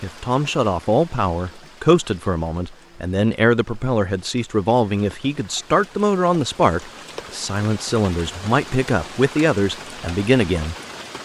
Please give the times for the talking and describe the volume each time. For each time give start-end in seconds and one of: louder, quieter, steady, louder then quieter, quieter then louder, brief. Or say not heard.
0.0-10.8 steady.